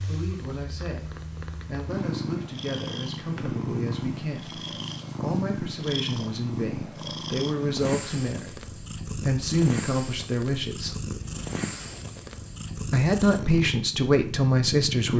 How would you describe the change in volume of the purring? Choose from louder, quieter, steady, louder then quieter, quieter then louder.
steady.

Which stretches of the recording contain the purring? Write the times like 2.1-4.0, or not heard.
0.0-15.1.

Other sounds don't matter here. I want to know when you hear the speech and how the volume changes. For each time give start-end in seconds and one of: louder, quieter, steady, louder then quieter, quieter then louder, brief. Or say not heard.
0.0-10.9 louder
12.9-15.1 brief.